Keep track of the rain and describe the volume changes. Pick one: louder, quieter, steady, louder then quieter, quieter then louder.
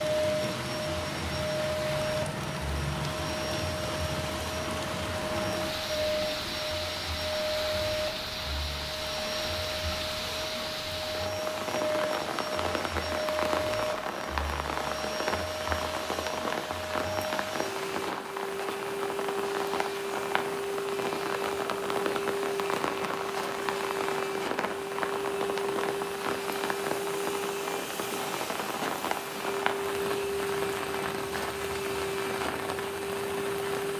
steady.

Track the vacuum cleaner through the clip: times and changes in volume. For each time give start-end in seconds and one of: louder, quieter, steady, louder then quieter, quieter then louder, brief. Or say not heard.
0.0-33.9 steady.